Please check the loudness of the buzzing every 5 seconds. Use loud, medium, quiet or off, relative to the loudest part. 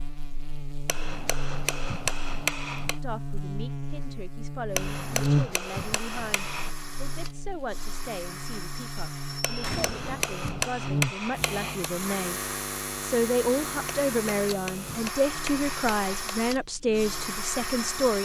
medium, loud, loud, quiet.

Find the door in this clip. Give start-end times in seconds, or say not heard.
9.6-10.2.